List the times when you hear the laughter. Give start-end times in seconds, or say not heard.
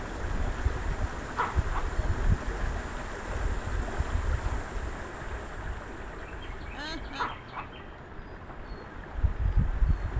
6.5-7.3.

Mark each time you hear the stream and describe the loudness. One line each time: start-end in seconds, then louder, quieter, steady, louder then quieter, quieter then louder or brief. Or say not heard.
0.0-10.1 quieter.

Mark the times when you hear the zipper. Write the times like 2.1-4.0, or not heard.
1.4-1.9, 7.2-7.8.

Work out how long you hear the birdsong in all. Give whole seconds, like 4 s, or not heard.
10 s.